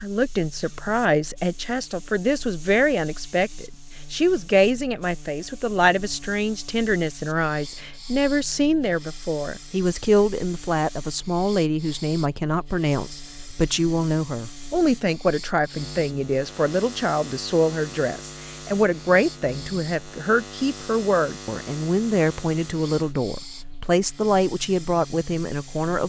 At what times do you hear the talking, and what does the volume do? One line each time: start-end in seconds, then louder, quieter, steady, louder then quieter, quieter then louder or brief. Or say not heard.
0.0-26.0 steady.